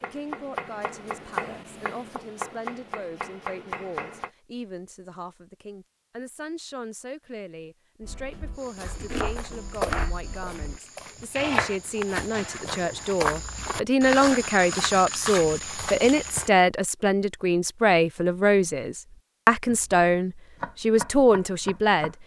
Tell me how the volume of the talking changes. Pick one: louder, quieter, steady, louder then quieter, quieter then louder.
louder.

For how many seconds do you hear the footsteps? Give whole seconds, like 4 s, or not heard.
8 s.